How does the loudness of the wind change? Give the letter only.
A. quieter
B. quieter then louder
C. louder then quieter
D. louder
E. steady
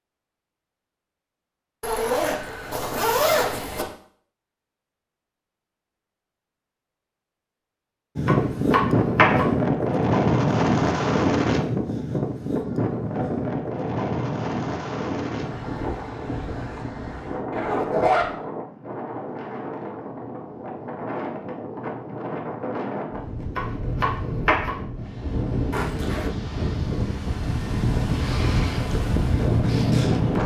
B.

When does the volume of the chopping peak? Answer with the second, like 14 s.
9 s.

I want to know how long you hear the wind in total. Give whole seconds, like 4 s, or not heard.
22 s.